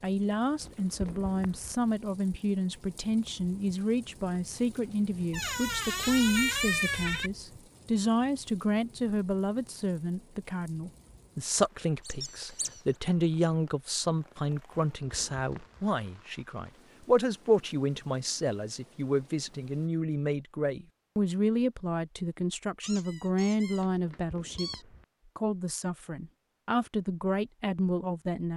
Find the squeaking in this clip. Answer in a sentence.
The squeaking can be heard from 5.3 to 7.3 s, from 12.1 to 12.8 s and from 22.8 to 24.9 s.